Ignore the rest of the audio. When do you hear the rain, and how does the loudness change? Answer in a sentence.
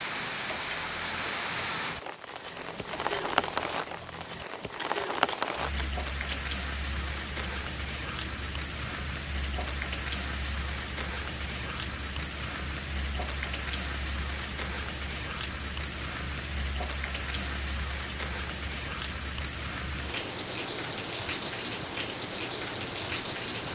You can hear the rain from 0.0 to 23.7 s, at a steady volume.